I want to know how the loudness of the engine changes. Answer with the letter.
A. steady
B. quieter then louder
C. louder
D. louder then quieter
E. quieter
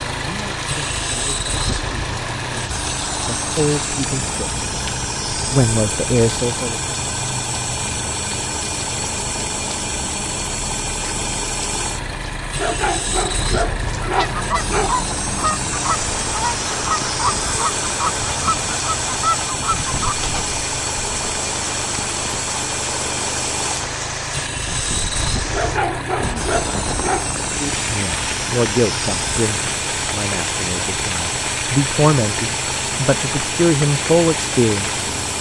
A.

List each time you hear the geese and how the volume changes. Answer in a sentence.
The geese can be heard from 14.0 to 20.4 s, at a steady volume.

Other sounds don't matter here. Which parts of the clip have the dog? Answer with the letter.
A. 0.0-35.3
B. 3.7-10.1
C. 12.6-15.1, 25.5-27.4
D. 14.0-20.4
C.